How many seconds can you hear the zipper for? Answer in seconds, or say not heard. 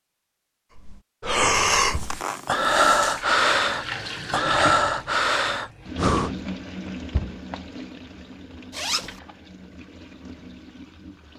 2 s.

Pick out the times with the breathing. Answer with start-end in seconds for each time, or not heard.
0.8-6.4.